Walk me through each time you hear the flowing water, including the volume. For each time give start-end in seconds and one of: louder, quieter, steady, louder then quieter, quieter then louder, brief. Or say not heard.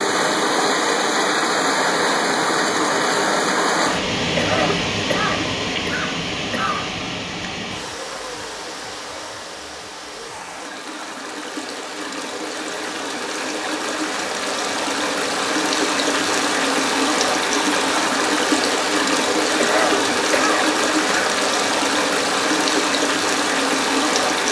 0.0-24.4 quieter then louder.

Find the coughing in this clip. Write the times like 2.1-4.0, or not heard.
4.3-7.0, 19.6-21.4.